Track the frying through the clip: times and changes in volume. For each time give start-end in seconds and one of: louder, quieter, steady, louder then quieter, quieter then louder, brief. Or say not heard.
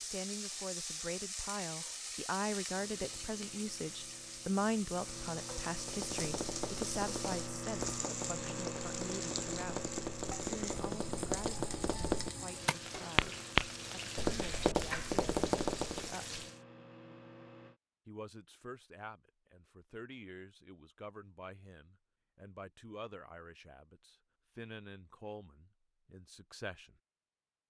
0.0-16.6 steady.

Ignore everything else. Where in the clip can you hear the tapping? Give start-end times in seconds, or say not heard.
5.8-16.1.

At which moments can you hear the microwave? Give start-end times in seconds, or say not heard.
2.7-17.8.